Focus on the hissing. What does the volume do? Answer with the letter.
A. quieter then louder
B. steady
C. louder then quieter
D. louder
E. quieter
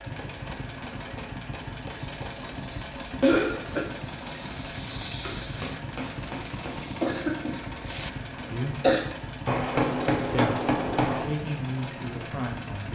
C.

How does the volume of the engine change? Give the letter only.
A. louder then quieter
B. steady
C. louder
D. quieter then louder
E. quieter
B.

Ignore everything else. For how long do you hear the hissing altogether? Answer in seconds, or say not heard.
6 s.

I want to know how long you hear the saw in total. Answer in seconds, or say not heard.
not heard.